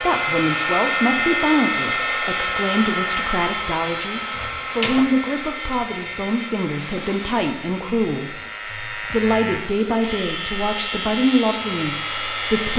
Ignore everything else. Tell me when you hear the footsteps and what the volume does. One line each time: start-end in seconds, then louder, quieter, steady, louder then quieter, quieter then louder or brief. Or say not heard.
not heard.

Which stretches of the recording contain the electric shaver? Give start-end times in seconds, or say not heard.
0.0-12.7.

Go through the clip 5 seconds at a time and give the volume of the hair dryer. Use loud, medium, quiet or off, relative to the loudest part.
loud, medium, medium.